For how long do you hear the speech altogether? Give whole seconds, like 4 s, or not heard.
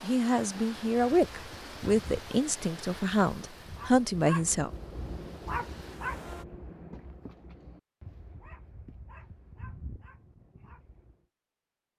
5 s.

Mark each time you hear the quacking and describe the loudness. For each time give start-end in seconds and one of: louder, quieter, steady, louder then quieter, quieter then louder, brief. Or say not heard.
not heard.